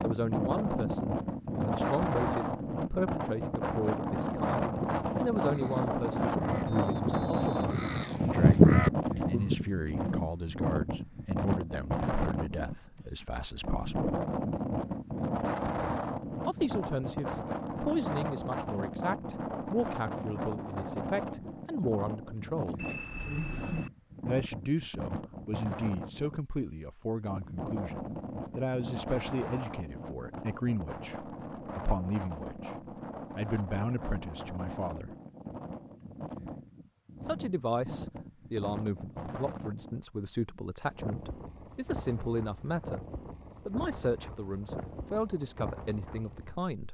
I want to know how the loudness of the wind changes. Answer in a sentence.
The loudness of the wind goes down.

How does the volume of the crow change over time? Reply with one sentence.
The loudness of the crow goes up, then down.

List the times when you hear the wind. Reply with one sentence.
The wind can be heard from 0.0 to 46.7 s.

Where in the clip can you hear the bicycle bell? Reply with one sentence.
You can hear the bicycle bell from 22.8 to 23.9 s.